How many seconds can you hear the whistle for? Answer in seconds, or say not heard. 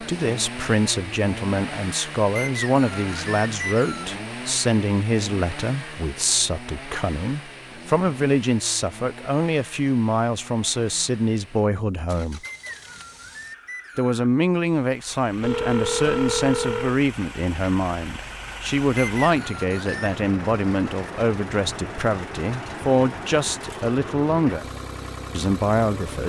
5 s.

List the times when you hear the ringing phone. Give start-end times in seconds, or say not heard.
15.4-17.0.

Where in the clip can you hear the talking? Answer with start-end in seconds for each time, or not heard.
0.0-12.4, 13.9-24.6, 25.3-26.2.